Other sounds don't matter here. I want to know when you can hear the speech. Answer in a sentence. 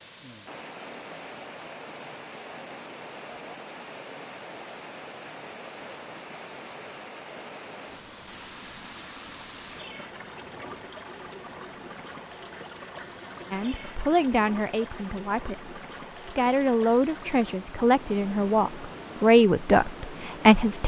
You can hear the speech from 13.5 to 20.8 s.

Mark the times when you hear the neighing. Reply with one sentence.
You can't hear the neighing here.